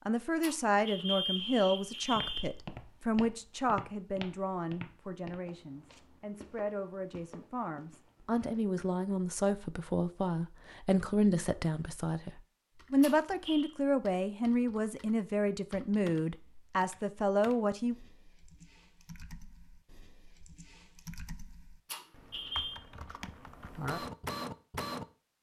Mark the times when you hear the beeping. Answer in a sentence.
The beeping can be heard from 0.4 to 2.5 s, from 13.0 to 13.7 s and from 21.9 to 22.8 s.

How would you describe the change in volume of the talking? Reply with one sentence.
The volume of the talking goes down, then up.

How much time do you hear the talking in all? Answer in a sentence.
You can hear the talking for 18 seconds altogether.